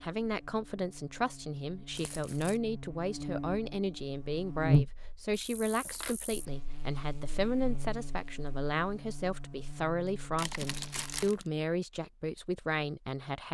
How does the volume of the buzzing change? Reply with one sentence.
The loudness of the buzzing goes up, then down.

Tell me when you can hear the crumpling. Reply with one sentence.
You can hear the crumpling from 1.9 to 2.6 s, from 5.3 to 6.2 s and from 10.3 to 11.4 s.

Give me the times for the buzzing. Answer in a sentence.
You can hear the buzzing from 0.0 to 11.4 s.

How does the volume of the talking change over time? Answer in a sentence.
The loudness of the talking stays about the same.